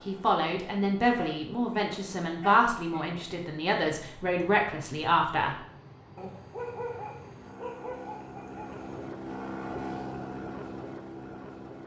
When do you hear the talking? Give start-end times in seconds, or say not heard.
0.1-5.5.